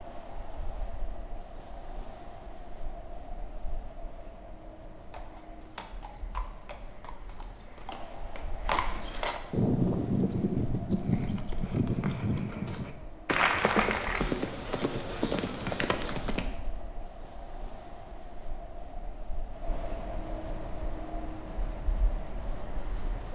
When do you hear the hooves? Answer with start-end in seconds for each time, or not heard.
5.0-16.4.